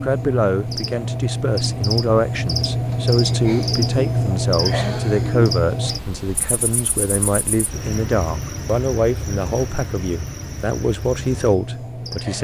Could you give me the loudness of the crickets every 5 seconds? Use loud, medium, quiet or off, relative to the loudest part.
loud, medium, medium.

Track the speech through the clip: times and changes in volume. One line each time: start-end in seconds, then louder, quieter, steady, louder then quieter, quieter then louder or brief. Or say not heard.
0.0-12.3 steady.